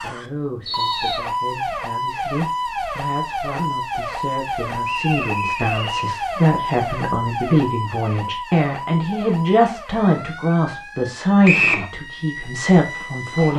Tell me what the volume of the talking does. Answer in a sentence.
The loudness of the talking goes up.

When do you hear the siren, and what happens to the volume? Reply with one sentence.
The siren can be heard from 0.0 to 13.5 s, getting quieter.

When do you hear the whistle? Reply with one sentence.
The whistle can be heard from 0.7 to 1.2 s, from 4.8 to 6.1 s and from 11.4 to 11.8 s.